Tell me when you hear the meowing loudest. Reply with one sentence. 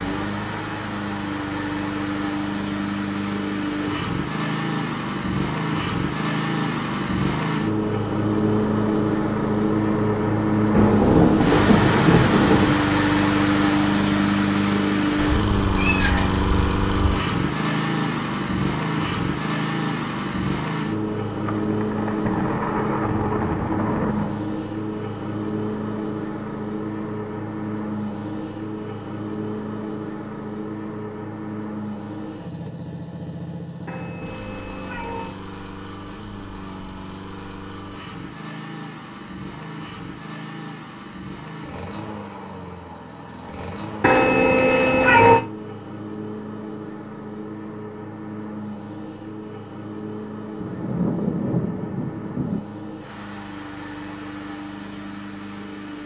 The loudest moment of the meowing is at 45 seconds.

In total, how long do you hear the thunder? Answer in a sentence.
The thunder can be heard for 7 seconds in total.